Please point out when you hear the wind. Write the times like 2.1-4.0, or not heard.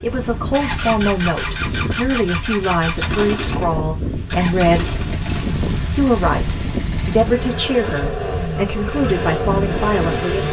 0.0-10.4.